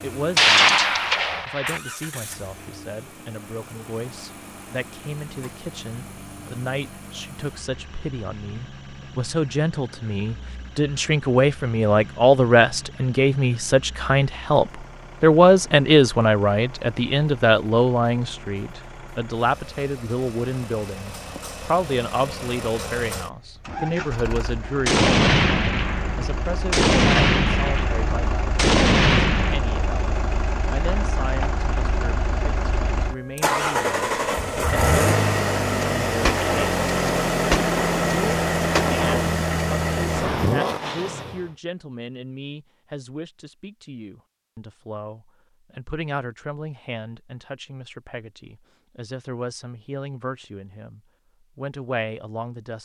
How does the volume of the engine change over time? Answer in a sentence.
The loudness of the engine goes up.